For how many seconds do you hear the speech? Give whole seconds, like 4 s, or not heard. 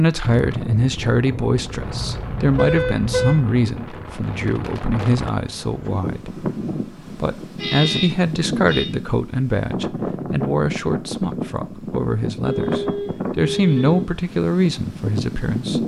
15 s.